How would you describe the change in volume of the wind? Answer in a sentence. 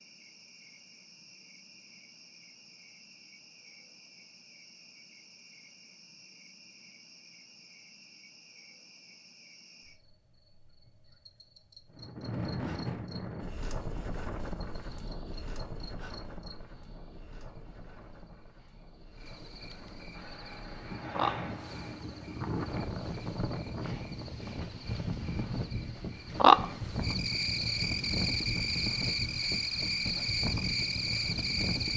The loudness of the wind goes down, then up.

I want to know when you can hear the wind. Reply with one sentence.
You can hear the wind from 11.9 to 31.9 s.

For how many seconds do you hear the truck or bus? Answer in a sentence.
The truck or bus can be heard for 2 seconds in total.